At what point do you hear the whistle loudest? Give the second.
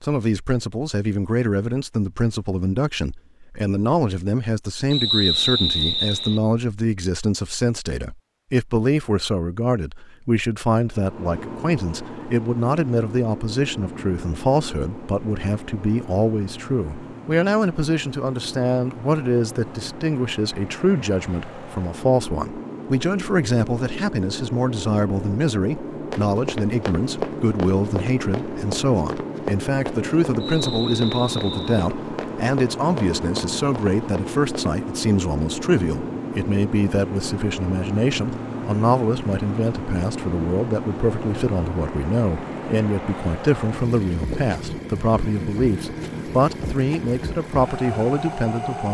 5 s.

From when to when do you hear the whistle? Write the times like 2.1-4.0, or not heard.
4.9-6.4, 30.4-31.9.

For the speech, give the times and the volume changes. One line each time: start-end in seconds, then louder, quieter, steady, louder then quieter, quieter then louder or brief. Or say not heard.
0.0-48.8 steady.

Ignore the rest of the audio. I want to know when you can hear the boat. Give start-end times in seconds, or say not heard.
10.8-48.8.